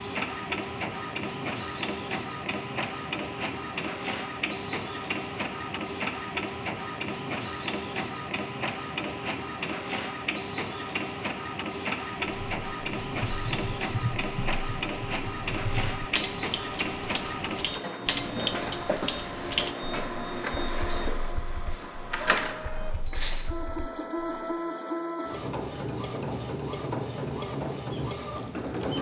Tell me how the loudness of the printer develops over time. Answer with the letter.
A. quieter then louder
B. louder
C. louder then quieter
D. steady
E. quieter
D.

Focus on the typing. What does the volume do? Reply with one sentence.
The volume of the typing goes up, then down.